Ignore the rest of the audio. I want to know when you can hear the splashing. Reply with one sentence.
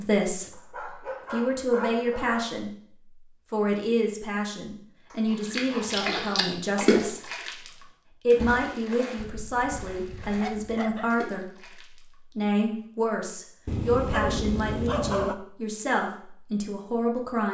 The splashing can be heard from 5.3 to 7.7 s and from 8.3 to 12.1 s.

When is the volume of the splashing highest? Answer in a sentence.
The volume of the splashing peaks at 7 seconds.